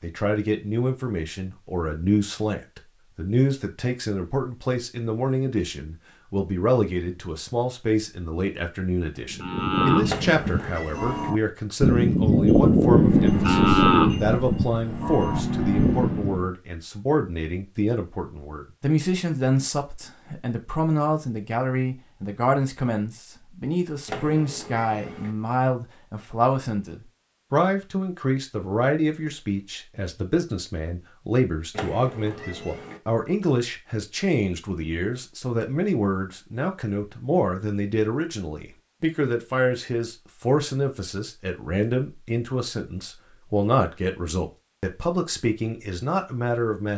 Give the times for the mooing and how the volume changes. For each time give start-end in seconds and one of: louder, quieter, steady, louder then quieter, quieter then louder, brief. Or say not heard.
9.3-16.5 louder then quieter.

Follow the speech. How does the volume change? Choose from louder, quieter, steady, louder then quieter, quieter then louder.
steady.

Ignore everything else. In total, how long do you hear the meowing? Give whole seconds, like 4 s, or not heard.
4 s.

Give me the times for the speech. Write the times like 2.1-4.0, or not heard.
0.0-46.9.